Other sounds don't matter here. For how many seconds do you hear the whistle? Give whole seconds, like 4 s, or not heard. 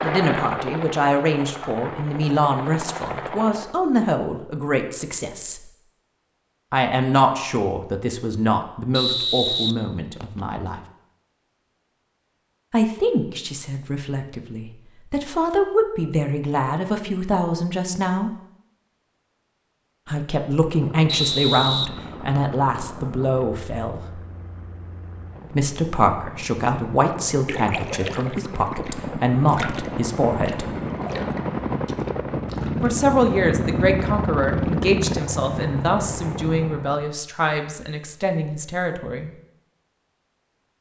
3 s.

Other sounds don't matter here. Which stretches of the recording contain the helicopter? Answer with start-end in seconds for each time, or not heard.
0.0-3.8, 20.7-37.1.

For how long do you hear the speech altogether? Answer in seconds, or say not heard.
31 s.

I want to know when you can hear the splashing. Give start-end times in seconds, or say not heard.
27.0-32.9.